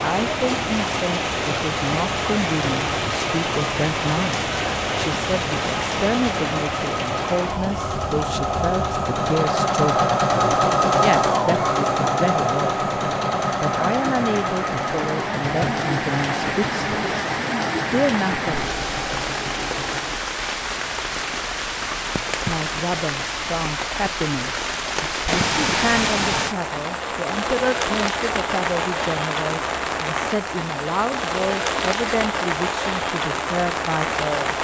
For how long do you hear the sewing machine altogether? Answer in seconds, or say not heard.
20 s.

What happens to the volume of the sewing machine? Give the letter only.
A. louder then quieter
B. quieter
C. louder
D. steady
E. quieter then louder
A.